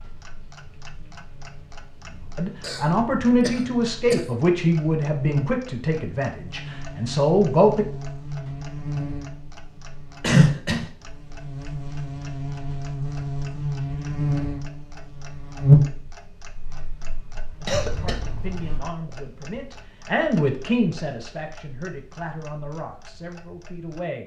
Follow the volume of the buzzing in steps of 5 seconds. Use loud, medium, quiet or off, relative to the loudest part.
quiet, medium, medium, loud, off.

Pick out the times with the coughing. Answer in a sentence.
You can hear the coughing from 2.6 to 4.2 s, from 10.2 to 10.8 s and from 17.6 to 18.9 s.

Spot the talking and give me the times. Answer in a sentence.
The talking can be heard from 2.4 to 7.8 s and from 17.6 to 24.2 s.